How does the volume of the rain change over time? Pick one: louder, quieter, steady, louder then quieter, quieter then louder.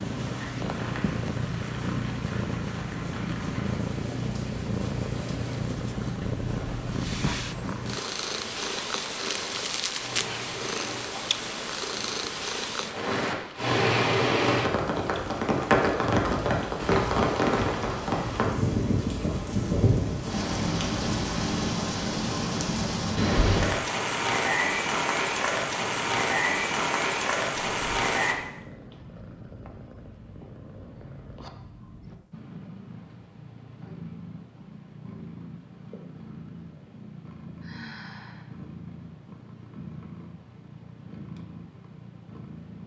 louder.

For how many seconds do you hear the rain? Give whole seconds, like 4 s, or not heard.
28 s.